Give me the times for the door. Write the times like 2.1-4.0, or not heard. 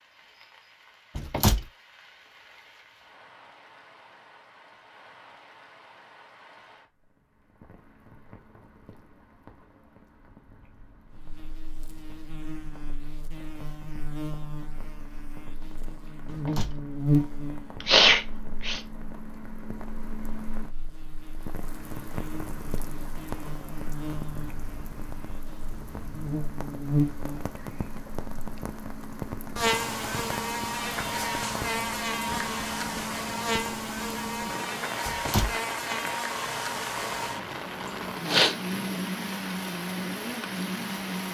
1.1-1.6, 16.2-16.8, 35.0-35.5.